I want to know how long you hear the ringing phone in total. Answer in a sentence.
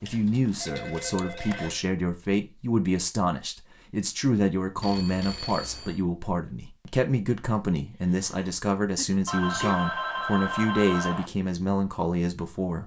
The ringing phone can be heard for 5 seconds in total.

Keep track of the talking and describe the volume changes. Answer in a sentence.
The volume of the talking stays about the same.